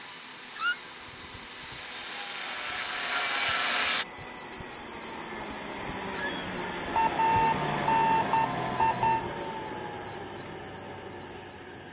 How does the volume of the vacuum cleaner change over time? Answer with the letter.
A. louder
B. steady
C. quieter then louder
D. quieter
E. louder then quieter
E.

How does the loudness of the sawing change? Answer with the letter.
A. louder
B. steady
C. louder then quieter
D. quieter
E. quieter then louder
A.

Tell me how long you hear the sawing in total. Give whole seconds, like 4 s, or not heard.
4 s.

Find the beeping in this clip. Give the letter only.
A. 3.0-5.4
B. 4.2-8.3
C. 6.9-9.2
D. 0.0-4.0
C.